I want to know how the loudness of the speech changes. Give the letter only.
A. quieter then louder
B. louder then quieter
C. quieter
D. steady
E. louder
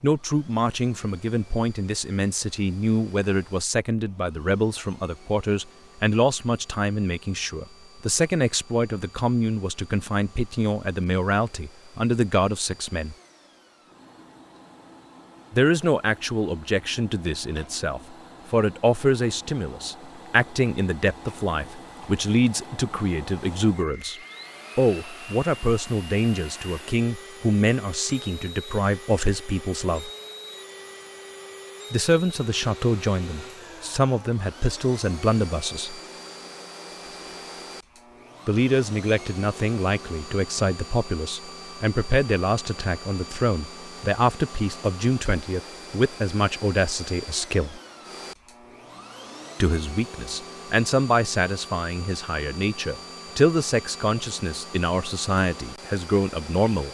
D.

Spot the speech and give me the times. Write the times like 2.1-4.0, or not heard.
0.0-13.2, 15.5-30.1, 31.9-36.0, 38.5-47.8, 49.6-56.8.